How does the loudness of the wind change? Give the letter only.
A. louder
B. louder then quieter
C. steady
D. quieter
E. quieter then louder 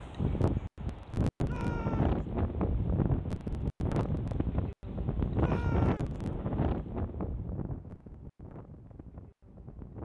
D.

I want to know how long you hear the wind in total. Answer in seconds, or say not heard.
10 s.